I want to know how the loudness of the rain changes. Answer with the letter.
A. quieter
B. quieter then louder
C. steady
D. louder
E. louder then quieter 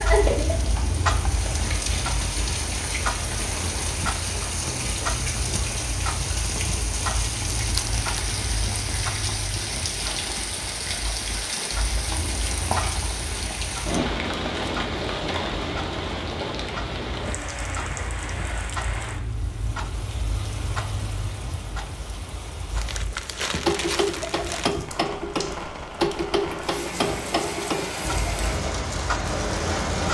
B.